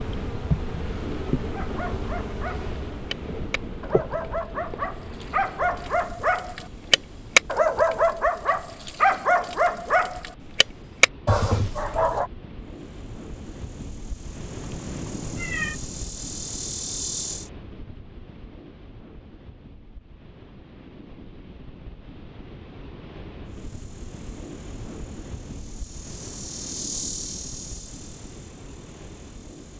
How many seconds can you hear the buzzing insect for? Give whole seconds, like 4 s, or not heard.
19 s.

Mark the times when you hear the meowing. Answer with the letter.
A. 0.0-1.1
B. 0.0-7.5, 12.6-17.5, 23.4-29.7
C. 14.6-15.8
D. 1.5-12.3
C.